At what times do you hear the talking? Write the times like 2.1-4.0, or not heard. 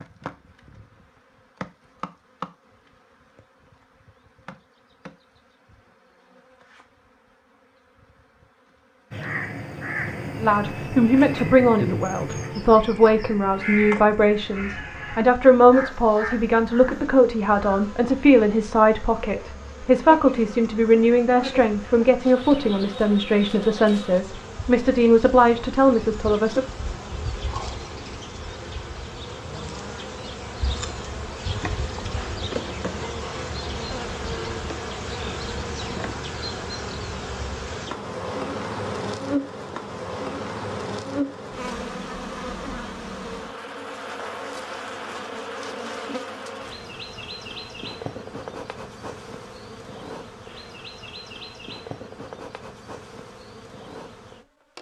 10.4-26.6.